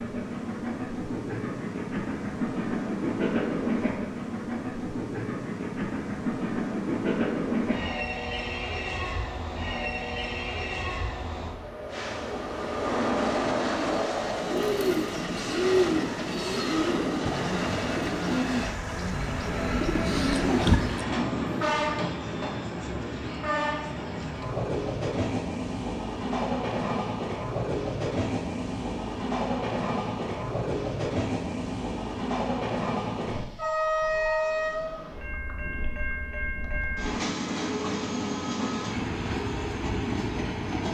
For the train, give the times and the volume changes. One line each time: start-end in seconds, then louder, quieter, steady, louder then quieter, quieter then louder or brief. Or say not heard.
0.0-40.8 steady.